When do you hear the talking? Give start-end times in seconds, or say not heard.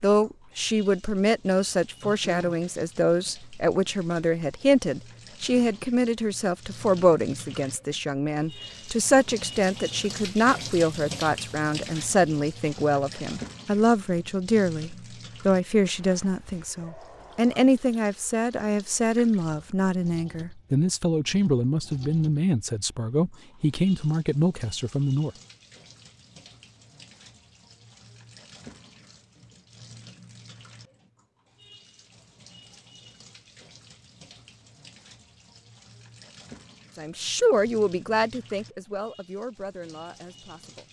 0.0-25.3, 37.0-40.8.